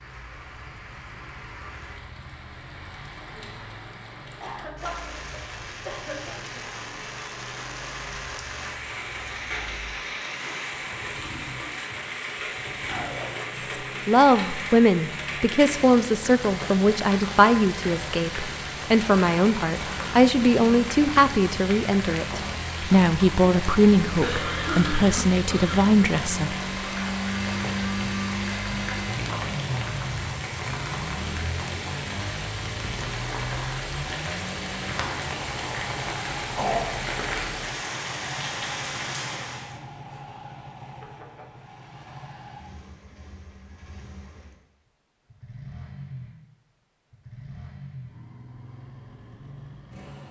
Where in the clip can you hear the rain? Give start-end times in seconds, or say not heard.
0.0-39.8.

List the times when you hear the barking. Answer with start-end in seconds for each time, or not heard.
not heard.